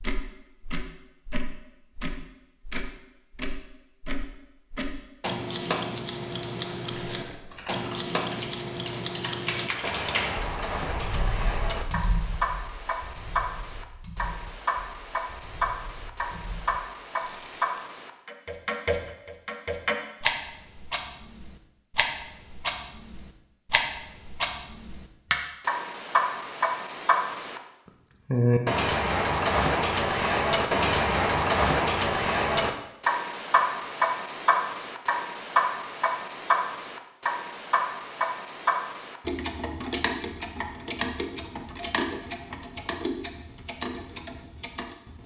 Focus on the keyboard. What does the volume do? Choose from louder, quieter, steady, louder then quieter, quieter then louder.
louder then quieter.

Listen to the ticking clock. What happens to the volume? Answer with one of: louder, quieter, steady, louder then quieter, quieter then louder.
louder then quieter.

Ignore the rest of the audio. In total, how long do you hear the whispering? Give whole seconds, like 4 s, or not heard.
not heard.